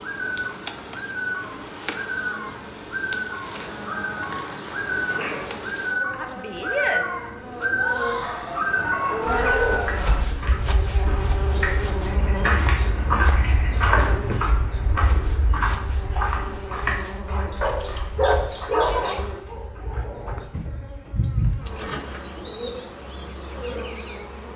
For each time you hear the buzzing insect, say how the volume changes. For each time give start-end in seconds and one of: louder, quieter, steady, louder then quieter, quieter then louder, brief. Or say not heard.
0.0-24.5 louder then quieter.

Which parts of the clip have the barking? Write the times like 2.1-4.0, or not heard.
3.5-5.5, 8.2-10.2, 17.6-19.2.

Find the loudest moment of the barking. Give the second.
19 s.